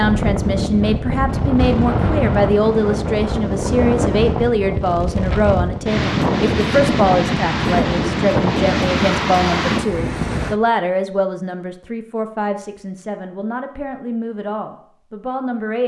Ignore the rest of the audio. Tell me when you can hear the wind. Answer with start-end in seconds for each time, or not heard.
0.0-10.6.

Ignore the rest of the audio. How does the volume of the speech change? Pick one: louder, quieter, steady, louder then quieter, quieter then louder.
quieter.